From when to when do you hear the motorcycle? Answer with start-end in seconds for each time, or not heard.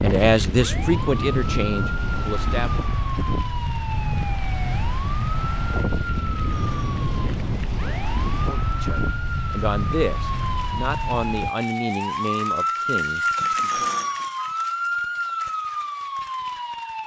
not heard.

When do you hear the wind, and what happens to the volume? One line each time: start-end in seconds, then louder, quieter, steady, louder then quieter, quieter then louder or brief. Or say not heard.
0.0-11.5 steady.